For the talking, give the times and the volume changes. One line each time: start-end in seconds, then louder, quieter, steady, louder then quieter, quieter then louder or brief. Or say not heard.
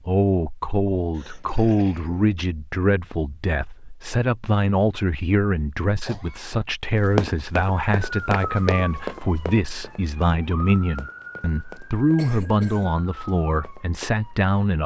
0.1-14.8 steady.